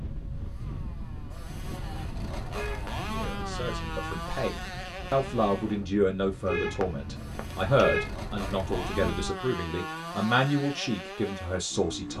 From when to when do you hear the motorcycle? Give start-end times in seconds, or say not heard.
0.1-12.1.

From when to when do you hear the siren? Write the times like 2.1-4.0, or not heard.
not heard.